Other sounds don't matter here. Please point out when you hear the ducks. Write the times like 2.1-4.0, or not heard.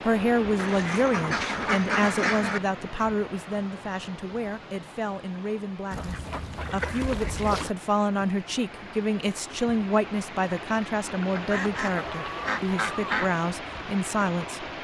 0.6-2.6, 5.9-7.7, 11.3-13.3.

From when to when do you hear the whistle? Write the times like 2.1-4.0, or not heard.
not heard.